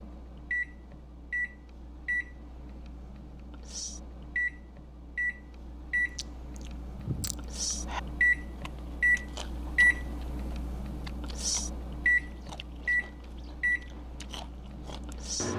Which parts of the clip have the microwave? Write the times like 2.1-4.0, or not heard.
0.0-15.5.